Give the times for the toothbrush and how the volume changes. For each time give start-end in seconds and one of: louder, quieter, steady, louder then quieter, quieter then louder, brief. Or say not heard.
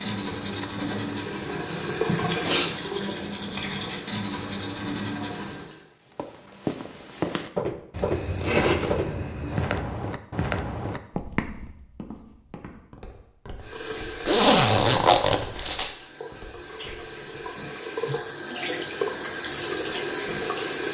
0.0-5.7 steady.